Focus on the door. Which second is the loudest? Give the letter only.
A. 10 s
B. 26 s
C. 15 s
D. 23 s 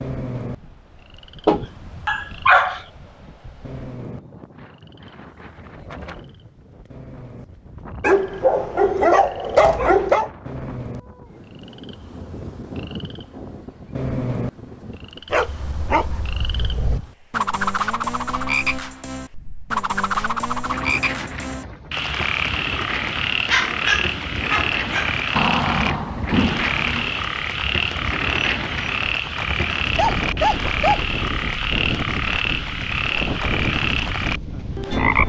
B.